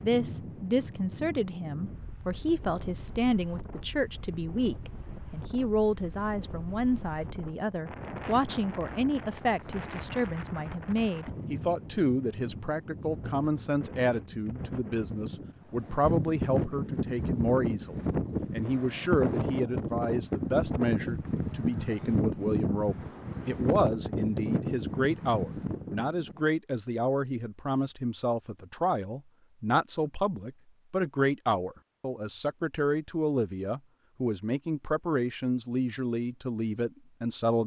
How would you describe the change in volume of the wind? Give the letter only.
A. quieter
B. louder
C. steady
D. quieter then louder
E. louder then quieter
B.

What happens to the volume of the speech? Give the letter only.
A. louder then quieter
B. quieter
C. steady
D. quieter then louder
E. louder
C.